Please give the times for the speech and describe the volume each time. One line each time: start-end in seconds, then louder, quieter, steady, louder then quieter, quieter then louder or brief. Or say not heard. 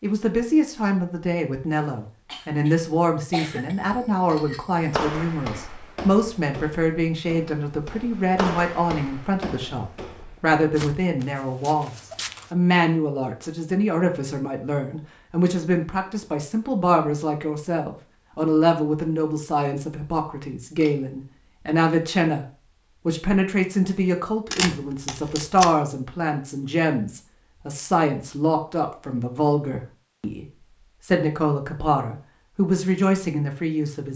0.0-22.4 steady
23.1-34.1 steady.